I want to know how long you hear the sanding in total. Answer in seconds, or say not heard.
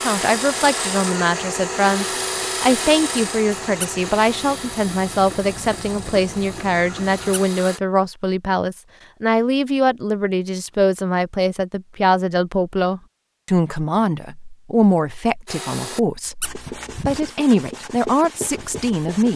12 s.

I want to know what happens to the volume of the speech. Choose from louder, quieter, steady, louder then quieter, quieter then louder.
steady.